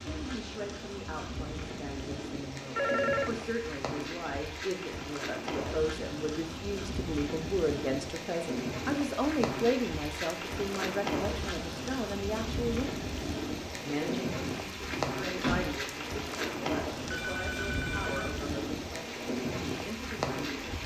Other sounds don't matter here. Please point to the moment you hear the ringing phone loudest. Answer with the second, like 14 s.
3 s.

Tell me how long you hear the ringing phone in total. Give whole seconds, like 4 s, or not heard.
2 s.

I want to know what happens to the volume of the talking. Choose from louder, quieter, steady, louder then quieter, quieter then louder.
louder then quieter.